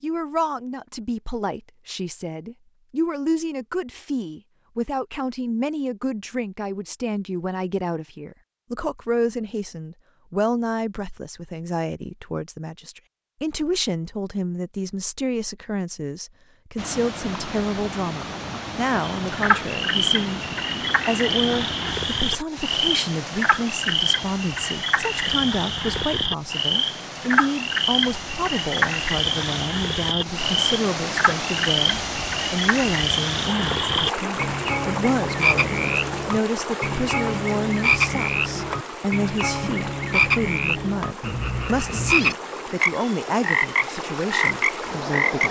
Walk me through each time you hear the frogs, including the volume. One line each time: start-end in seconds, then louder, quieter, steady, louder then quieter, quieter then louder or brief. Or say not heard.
19.2-45.4 steady.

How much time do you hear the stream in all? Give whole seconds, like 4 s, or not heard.
29 s.